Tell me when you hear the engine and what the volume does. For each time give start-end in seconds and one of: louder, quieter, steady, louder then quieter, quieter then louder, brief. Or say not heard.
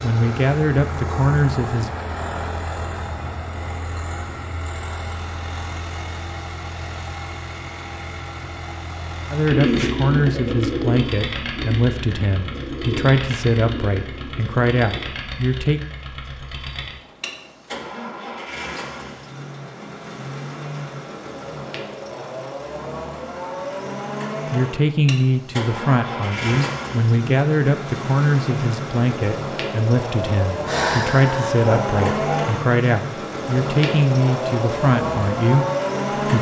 0.0-36.3 louder.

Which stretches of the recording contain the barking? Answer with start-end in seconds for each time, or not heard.
30.6-32.5.